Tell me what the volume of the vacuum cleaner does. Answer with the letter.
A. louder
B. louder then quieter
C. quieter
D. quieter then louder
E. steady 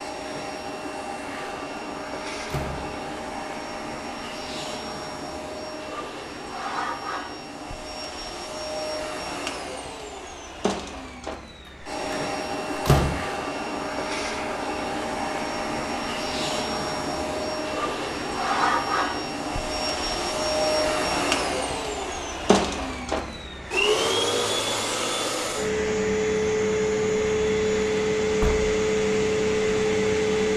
A.